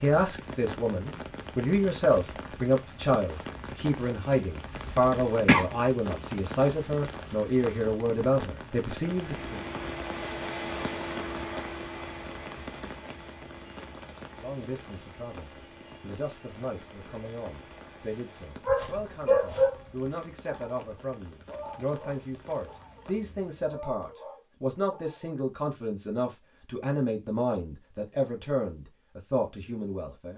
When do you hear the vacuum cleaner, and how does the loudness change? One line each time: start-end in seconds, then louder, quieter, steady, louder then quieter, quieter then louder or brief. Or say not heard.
9.0-18.8 quieter.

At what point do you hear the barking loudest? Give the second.
19 s.